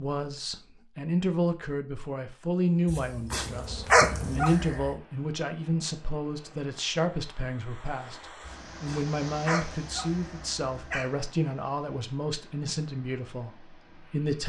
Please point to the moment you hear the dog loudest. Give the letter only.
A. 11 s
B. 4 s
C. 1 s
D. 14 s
B.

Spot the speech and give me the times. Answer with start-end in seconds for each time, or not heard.
0.0-14.4.